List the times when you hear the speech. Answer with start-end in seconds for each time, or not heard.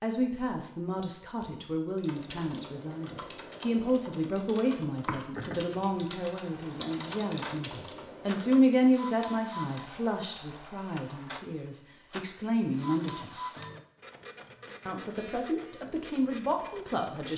0.0-13.3, 14.8-17.3.